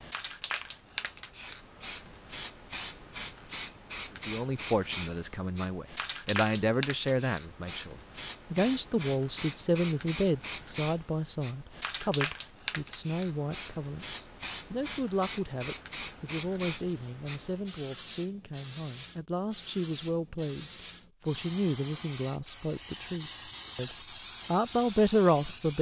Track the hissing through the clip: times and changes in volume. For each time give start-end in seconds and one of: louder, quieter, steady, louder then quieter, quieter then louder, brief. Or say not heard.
0.0-25.7 steady.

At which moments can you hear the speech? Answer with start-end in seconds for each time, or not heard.
4.2-25.7.